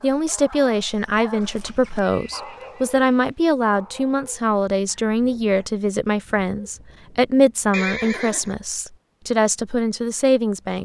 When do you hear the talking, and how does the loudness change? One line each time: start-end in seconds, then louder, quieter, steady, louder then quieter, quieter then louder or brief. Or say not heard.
0.0-10.7 steady.